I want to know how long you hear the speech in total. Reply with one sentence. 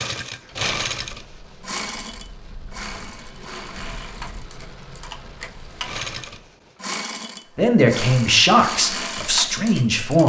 The speech can be heard for 3 seconds in total.